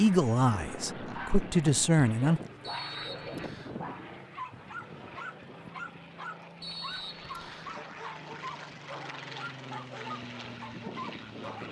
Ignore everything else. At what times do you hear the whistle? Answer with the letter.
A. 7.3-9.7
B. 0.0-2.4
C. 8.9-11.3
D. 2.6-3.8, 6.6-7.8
D.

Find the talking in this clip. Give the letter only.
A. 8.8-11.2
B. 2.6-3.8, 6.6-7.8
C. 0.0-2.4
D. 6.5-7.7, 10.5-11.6
C.